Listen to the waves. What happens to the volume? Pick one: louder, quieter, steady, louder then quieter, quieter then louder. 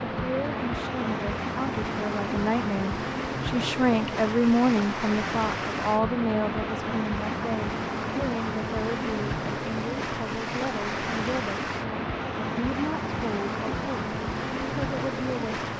steady.